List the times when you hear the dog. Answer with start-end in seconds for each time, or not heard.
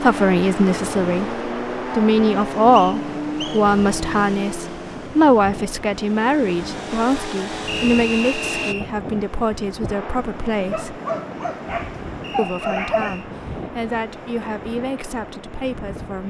10.7-13.2.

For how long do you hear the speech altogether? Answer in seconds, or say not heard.
15 s.